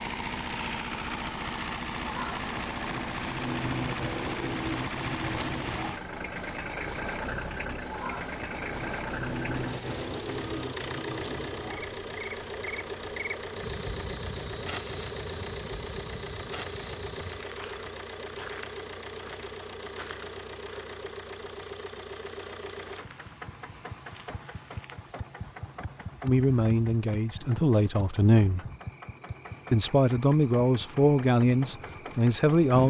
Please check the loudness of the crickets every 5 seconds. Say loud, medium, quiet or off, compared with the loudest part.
loud, loud, medium, quiet, quiet, quiet, quiet.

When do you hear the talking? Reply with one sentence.
You can hear the talking from 26.2 to 28.6 s and from 29.7 to 32.8 s.